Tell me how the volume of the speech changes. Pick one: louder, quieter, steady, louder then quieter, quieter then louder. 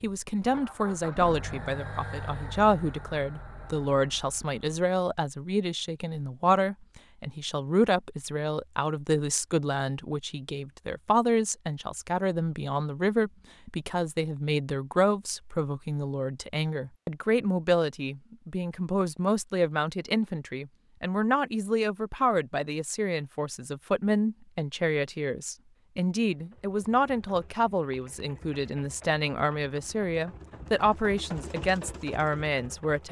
steady.